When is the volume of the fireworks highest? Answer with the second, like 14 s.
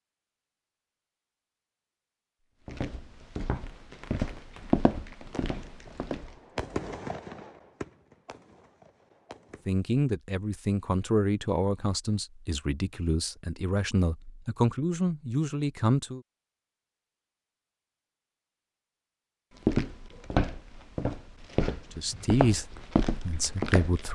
7 s.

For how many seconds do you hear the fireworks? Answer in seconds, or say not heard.
6 s.